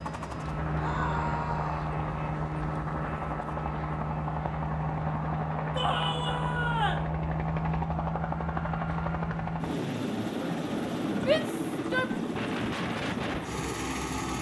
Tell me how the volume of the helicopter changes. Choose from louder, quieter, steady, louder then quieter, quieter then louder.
steady.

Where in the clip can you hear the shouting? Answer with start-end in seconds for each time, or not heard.
0.8-1.9, 5.8-7.0, 11.2-12.1.